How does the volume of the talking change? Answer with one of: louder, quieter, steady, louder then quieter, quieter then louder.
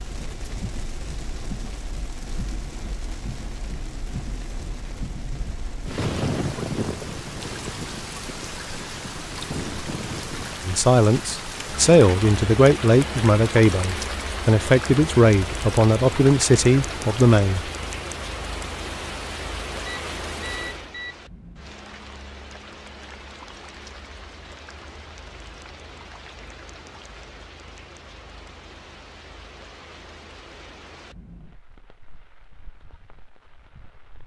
steady.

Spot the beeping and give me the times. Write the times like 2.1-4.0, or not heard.
19.9-21.1.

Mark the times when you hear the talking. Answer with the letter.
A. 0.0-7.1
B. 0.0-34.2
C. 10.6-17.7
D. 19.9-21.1
C.